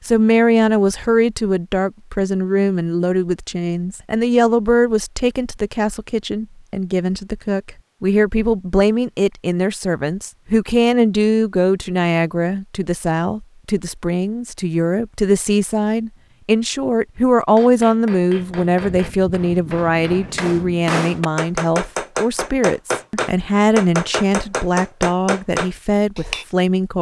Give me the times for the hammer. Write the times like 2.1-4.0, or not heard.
17.5-26.4.